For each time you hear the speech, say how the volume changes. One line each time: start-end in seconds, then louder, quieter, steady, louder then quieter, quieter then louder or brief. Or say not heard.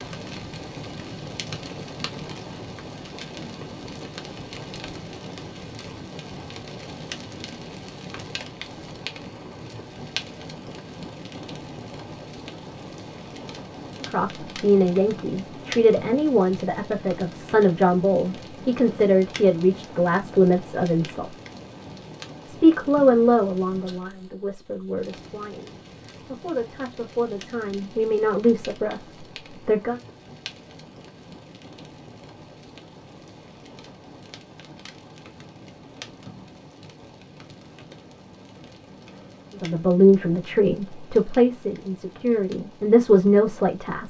14.0-21.4 steady
22.4-30.0 quieter then louder
39.5-44.0 quieter then louder.